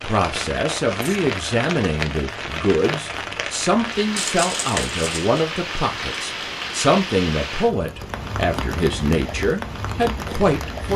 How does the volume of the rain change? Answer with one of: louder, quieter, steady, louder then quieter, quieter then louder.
steady.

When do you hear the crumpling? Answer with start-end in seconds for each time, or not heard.
4.2-5.4.